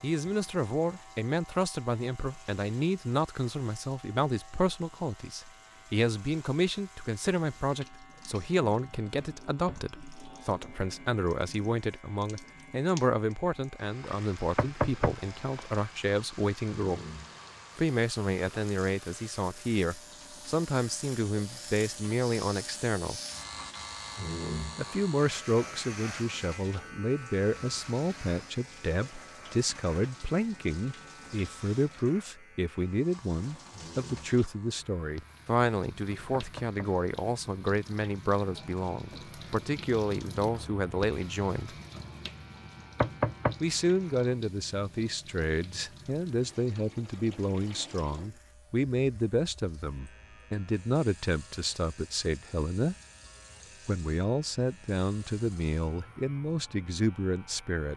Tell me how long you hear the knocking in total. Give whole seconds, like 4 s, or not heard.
2 s.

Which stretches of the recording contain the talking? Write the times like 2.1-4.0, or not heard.
0.0-17.1, 17.8-23.2, 24.8-41.8, 43.6-53.0, 53.9-57.9.